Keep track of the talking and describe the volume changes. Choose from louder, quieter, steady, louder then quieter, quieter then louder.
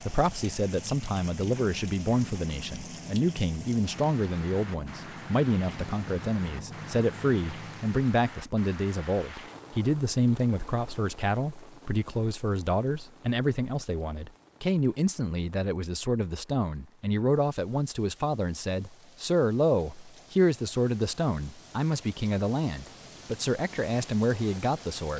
steady.